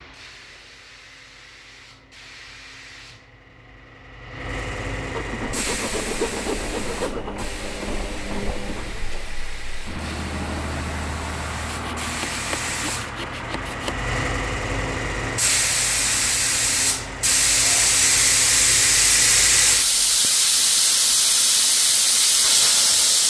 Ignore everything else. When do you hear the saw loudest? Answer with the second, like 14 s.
6 s.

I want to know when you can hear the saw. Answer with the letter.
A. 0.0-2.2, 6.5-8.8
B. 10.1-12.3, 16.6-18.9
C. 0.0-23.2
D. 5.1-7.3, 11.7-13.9
D.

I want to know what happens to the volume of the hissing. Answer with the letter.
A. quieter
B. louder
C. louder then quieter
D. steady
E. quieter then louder
B.